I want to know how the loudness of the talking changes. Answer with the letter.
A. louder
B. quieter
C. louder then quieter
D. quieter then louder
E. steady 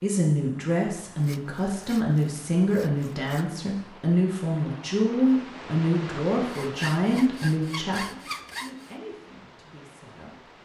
B.